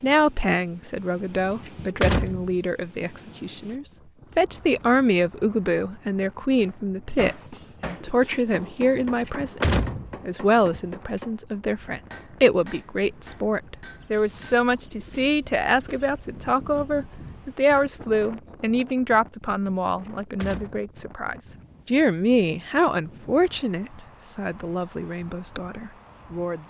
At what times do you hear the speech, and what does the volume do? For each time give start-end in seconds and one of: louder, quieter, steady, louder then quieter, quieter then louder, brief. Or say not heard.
0.0-26.6 steady.